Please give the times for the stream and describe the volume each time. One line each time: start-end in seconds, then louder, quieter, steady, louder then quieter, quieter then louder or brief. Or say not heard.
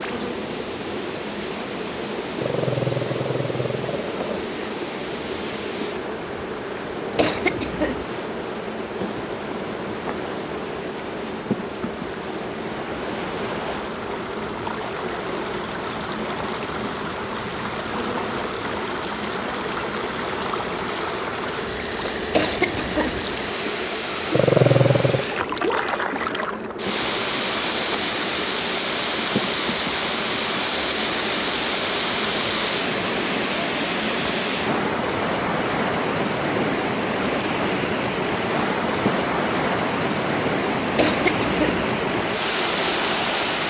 0.0-43.6 louder.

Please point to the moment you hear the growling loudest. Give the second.
25 s.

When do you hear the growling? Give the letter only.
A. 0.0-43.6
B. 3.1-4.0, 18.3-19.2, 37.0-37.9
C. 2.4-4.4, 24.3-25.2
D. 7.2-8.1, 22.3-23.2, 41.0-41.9
C.